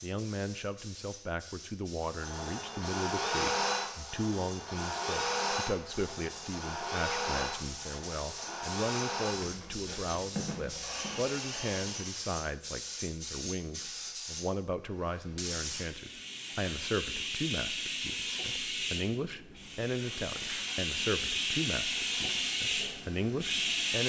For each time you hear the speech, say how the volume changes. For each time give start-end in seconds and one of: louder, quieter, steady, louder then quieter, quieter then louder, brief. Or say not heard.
0.0-24.0 steady.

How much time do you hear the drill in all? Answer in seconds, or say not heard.
14 s.